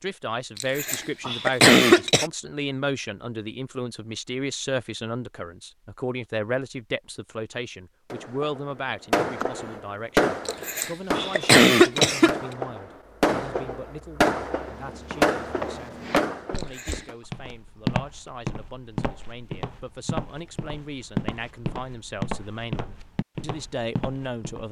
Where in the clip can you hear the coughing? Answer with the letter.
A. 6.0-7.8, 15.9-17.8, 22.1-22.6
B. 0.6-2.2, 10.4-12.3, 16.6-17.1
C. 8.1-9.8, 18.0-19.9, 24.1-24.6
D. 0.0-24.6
B.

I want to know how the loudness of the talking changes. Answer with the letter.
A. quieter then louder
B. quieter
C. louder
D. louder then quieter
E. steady
A.